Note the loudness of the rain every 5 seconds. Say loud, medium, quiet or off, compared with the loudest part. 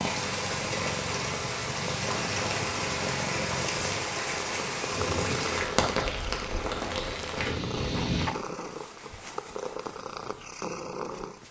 loud, loud, off.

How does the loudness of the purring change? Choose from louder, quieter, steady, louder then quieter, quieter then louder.
steady.